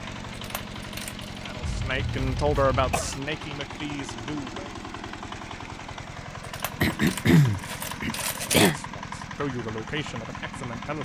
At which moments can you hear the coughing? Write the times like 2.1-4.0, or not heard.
1.6-3.2, 6.8-8.8.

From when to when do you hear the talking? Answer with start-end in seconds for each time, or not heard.
1.4-4.8, 8.2-11.0.